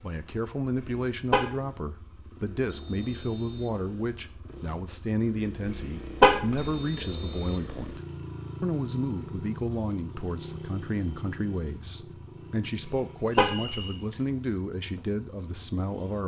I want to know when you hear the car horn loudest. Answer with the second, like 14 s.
6 s.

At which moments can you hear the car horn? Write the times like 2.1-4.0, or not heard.
0.8-1.4, 5.8-6.7, 12.8-13.8.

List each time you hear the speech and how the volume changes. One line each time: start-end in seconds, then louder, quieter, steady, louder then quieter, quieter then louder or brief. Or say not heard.
0.0-8.0 steady
8.6-16.2 steady.